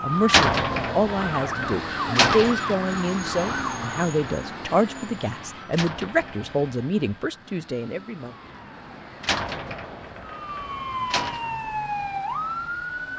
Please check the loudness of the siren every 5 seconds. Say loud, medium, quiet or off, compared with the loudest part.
loud, quiet, loud.